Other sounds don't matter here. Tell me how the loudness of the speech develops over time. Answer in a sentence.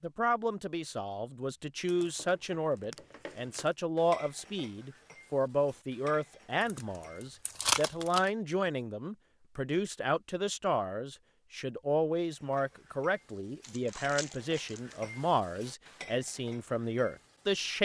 The volume of the speech stays about the same.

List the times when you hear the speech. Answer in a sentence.
The speech can be heard from 0.0 to 17.7 s.